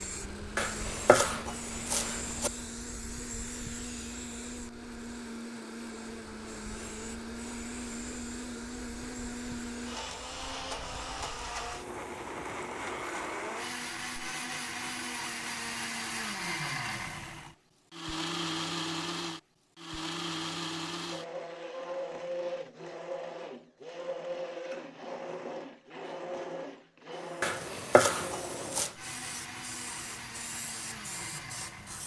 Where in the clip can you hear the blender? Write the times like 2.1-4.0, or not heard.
0.0-32.0.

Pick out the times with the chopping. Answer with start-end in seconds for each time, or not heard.
0.6-2.5, 27.4-28.9.